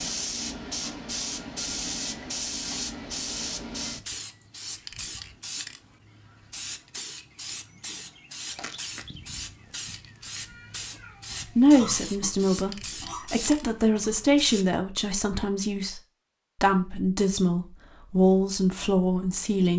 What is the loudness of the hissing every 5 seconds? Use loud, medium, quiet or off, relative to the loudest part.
loud, medium, medium, off.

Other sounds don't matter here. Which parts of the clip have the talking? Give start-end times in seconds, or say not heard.
11.6-16.0, 16.6-19.7.